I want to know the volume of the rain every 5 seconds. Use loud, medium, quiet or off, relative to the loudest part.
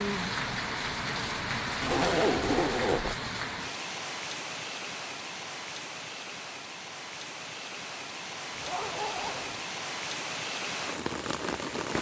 loud, medium, loud.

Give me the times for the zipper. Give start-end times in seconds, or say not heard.
1.8-3.1, 8.6-9.7.